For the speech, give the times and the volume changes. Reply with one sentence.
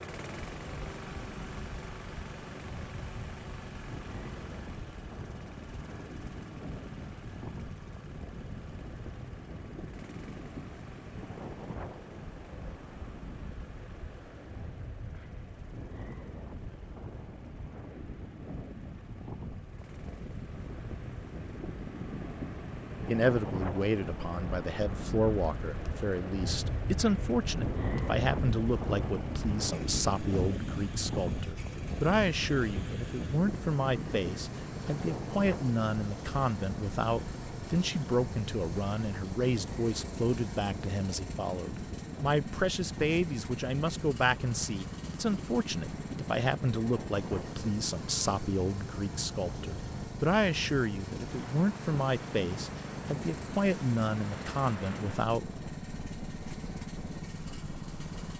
You can hear the speech from 23.1 to 55.5 s, at a steady volume.